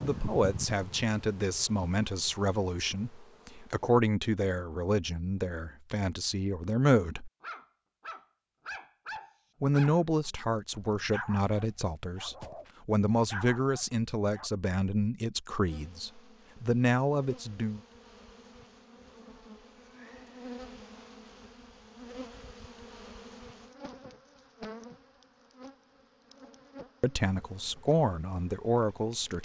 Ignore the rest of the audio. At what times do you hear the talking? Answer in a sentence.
The talking can be heard from 0.0 to 7.3 s, from 9.6 to 17.8 s and from 27.0 to 29.4 s.